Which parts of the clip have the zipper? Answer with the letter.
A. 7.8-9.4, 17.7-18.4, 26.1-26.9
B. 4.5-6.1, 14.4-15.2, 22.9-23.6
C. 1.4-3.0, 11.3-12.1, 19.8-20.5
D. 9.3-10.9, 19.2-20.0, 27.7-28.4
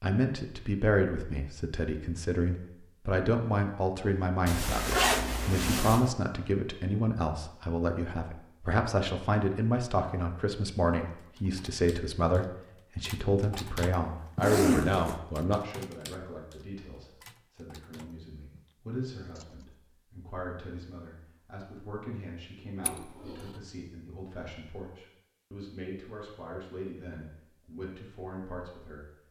B.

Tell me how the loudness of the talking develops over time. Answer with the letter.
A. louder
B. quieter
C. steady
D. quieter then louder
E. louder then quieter
B.